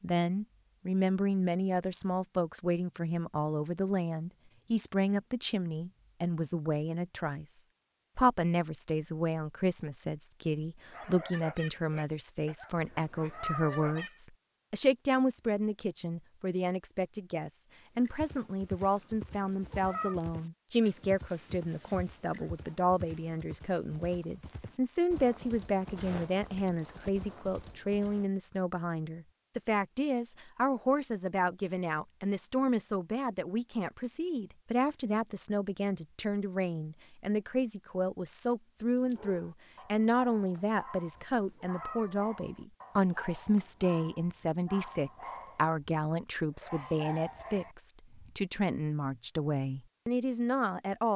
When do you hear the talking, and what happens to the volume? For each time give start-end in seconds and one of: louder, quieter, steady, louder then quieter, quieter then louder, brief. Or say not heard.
0.0-51.1 steady.